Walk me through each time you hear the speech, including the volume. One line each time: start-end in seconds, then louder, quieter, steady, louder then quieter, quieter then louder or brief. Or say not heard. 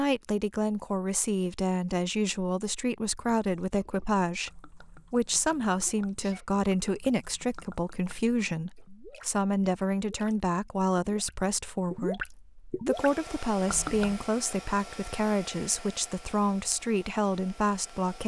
0.0-18.2 steady.